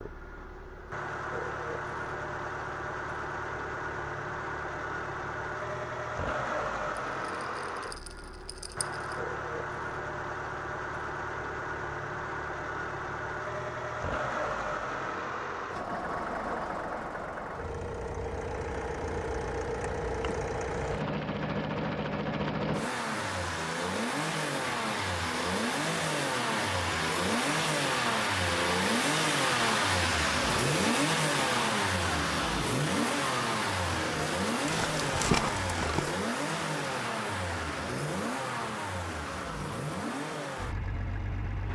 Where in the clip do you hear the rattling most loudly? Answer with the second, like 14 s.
35 s.